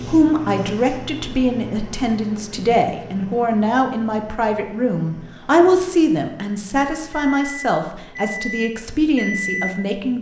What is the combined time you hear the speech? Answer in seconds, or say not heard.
10 s.